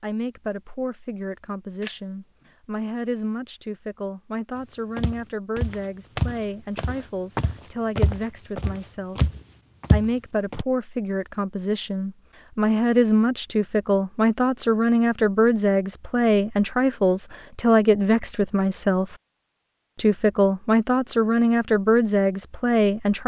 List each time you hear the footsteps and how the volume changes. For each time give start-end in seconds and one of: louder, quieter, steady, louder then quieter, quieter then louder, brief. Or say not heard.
5.0-10.7 quieter then louder.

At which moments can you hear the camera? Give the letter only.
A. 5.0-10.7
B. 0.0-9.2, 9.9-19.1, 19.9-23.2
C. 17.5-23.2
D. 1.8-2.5
D.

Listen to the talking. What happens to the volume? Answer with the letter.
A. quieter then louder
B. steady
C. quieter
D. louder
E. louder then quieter
D.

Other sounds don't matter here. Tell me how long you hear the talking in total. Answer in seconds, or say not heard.
22 s.